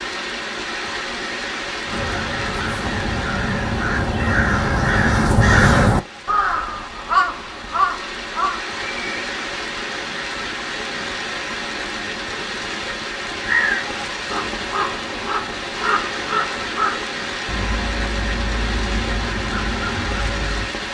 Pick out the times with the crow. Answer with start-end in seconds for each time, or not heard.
1.9-9.3, 13.3-20.7.